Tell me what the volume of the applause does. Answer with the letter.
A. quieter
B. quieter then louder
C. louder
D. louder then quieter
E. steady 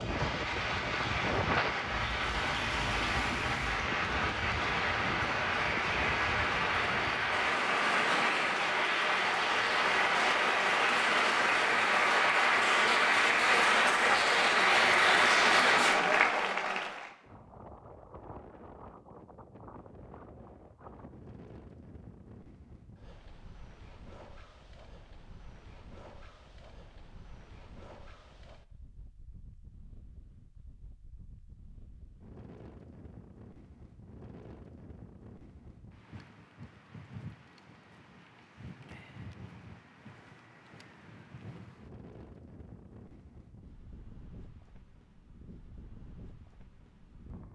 C.